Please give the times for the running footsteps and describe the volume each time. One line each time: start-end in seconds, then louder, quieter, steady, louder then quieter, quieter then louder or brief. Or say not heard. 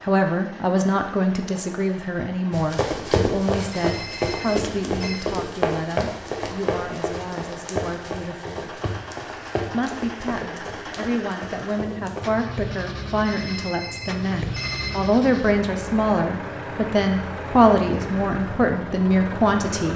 2.5-12.3 quieter.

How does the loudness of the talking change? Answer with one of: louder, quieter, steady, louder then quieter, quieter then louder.
quieter then louder.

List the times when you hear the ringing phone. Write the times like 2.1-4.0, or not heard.
3.7-5.2, 13.2-15.1.